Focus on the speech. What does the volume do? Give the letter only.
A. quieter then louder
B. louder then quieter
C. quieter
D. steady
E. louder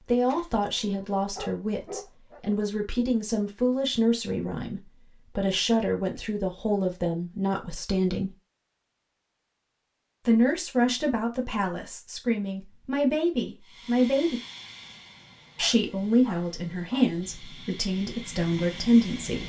D.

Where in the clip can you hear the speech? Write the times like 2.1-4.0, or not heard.
0.1-8.3, 10.2-14.4, 15.6-19.4.